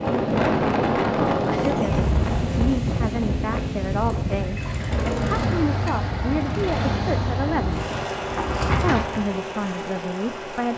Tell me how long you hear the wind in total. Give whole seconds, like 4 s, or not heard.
9 s.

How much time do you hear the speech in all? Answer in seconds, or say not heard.
8 s.